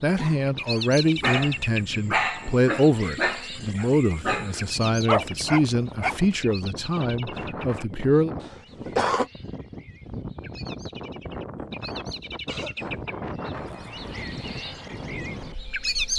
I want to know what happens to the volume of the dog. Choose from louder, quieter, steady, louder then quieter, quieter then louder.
quieter then louder.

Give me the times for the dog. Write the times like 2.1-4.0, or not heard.
1.2-6.2.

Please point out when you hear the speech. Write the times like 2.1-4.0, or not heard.
0.0-8.3.